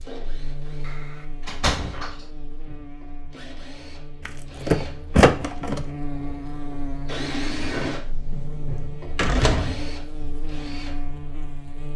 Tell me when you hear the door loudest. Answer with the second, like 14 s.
5 s.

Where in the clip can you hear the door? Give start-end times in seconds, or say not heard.
0.8-2.1, 4.2-5.8, 8.1-8.6, 9.2-9.9.